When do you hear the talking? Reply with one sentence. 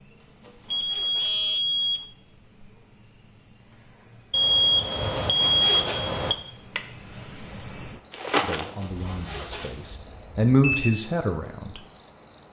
You can hear the talking from 8.4 to 11.7 s.